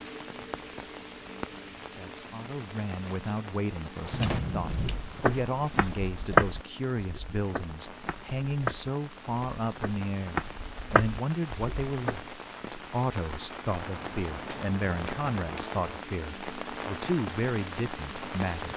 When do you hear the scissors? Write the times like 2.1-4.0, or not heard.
4.1-5.0, 13.8-15.7.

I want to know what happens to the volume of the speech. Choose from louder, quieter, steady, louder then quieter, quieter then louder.
steady.